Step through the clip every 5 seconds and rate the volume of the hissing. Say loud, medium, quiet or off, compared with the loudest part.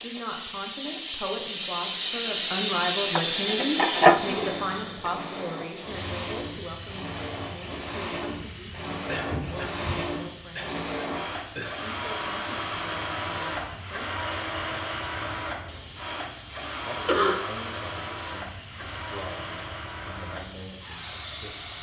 loud, quiet, quiet, quiet, quiet.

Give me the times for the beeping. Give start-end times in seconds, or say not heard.
not heard.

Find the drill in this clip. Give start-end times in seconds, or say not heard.
4.0-21.7.